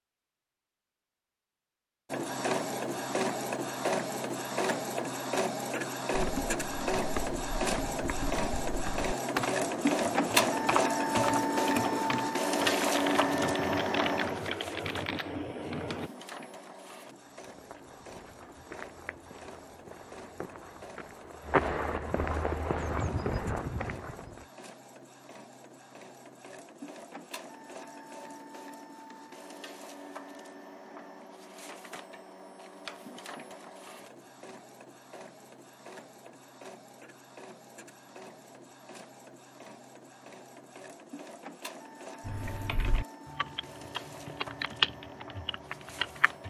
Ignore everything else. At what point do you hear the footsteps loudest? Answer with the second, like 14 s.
22 s.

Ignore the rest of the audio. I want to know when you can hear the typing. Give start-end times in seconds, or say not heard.
6.1-16.1, 42.2-46.4.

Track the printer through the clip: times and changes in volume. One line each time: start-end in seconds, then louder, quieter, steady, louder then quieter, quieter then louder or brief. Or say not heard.
2.1-46.4 quieter.